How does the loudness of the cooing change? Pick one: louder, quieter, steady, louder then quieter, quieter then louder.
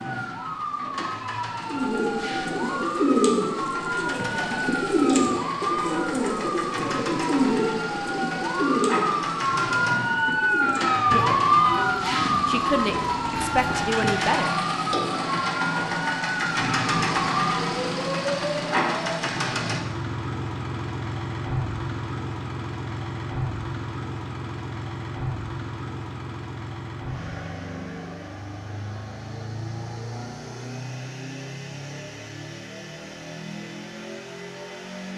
quieter.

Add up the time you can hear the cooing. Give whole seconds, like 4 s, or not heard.
12 s.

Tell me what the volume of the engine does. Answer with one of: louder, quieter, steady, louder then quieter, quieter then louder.
louder then quieter.